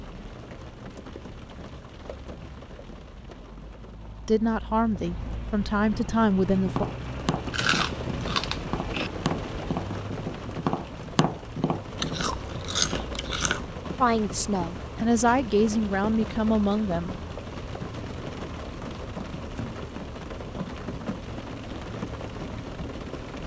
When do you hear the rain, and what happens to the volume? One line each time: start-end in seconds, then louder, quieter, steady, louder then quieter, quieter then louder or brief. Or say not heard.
0.0-23.4 louder.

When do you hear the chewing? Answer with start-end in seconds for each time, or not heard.
7.5-9.1, 11.9-13.7.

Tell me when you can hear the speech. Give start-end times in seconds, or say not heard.
4.2-6.8, 14.0-17.1.